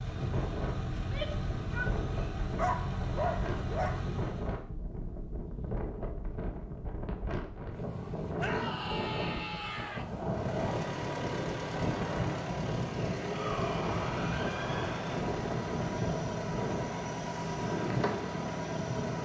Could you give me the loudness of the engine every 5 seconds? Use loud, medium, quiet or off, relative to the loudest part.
loud, off, loud, loud.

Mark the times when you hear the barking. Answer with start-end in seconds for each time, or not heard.
2.5-4.0.